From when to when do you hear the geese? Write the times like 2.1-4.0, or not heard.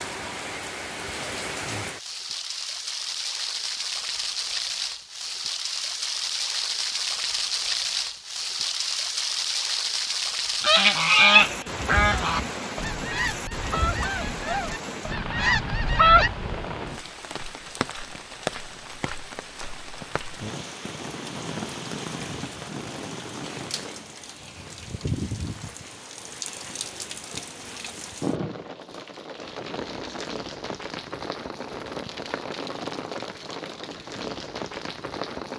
10.6-16.3.